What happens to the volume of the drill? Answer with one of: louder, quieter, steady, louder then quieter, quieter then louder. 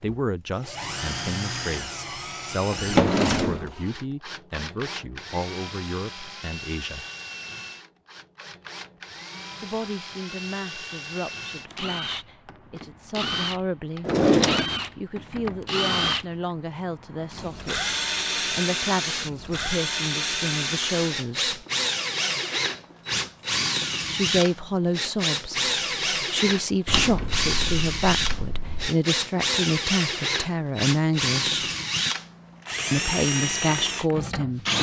louder.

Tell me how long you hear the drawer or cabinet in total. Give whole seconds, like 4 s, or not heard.
4 s.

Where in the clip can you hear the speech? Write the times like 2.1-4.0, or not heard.
0.0-7.0, 9.6-14.2, 14.9-21.6, 24.1-31.6, 32.9-34.7.